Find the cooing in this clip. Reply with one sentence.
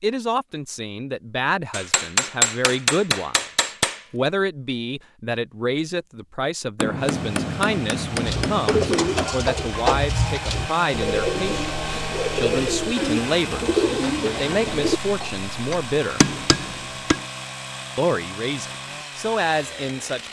The cooing can be heard from 8.1 to 15.3 s.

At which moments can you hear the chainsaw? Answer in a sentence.
You can hear the chainsaw from 7.0 to 20.2 s.